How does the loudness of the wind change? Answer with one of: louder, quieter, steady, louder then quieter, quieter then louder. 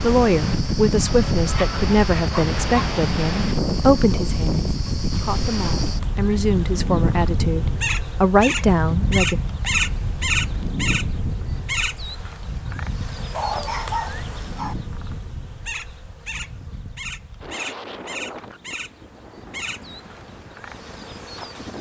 quieter.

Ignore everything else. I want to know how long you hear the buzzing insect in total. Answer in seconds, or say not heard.
22 s.